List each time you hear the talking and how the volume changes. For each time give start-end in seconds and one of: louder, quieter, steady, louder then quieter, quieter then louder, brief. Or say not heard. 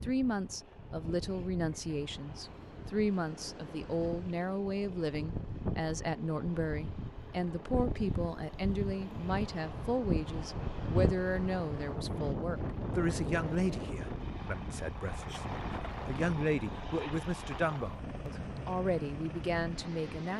0.0-20.3 steady.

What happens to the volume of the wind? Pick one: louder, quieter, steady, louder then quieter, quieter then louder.
louder then quieter.